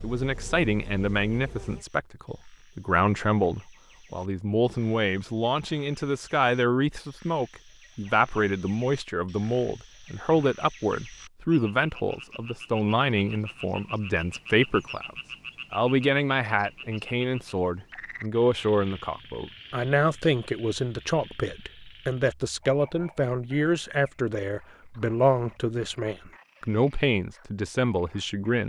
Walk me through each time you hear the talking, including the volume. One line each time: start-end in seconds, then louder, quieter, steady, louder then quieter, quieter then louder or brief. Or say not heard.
0.0-28.6 steady.